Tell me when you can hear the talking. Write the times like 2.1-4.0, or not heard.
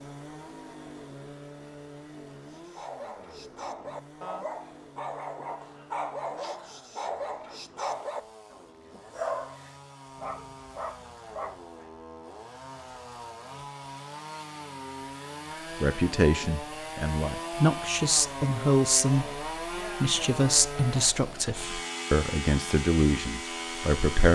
15.8-24.2.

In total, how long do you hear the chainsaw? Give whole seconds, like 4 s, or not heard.
24 s.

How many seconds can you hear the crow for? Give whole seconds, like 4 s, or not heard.
not heard.